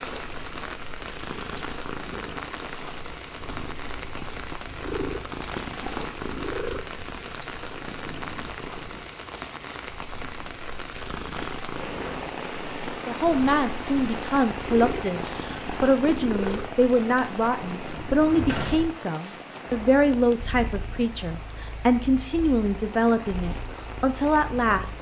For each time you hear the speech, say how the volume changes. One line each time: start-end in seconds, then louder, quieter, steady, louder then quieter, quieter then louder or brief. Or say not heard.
13.1-24.9 steady.